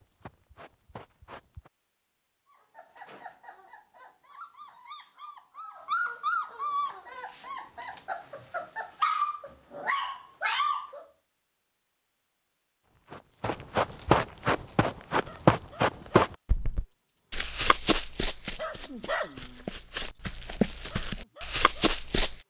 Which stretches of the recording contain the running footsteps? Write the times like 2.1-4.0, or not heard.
0.0-1.7, 12.8-22.4.